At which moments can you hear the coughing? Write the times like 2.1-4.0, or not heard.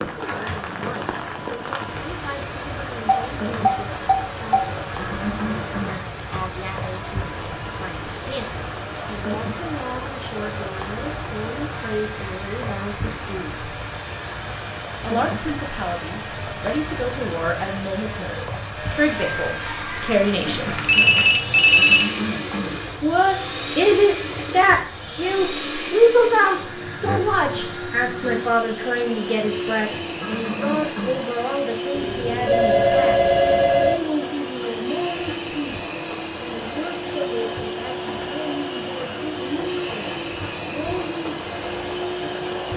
5.0-6.0, 21.8-22.9, 30.2-31.2.